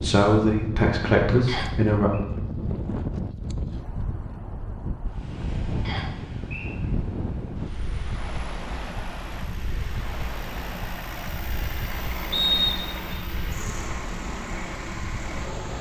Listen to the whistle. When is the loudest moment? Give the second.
13 s.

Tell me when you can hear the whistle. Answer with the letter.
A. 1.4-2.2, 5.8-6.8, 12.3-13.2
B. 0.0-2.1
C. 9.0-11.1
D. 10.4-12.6
A.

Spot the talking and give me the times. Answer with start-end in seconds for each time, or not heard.
0.0-2.1.